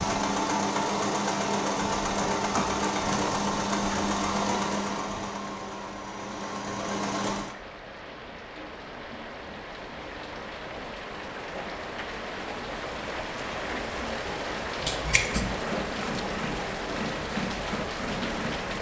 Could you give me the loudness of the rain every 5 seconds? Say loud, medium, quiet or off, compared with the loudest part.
off, medium, loud, loud.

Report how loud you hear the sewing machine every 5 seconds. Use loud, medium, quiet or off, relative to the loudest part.
loud, medium, off, off.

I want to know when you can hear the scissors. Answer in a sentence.
You can hear the scissors from 14.8 to 15.7 s.